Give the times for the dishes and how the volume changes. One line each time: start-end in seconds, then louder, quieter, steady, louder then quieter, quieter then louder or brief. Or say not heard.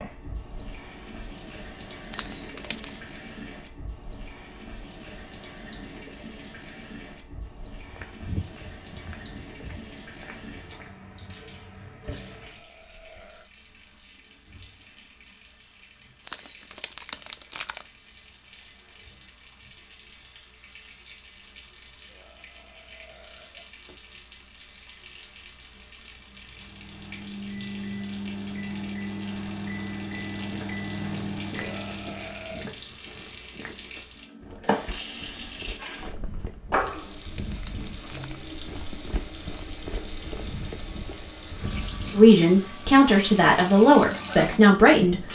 not heard.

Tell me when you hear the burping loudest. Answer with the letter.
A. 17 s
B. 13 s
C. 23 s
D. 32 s
D.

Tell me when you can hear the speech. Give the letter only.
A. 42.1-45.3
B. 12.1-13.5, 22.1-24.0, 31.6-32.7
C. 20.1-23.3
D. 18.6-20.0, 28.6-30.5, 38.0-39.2
A.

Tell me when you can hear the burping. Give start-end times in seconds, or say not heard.
12.1-13.5, 22.1-24.0, 31.6-32.7.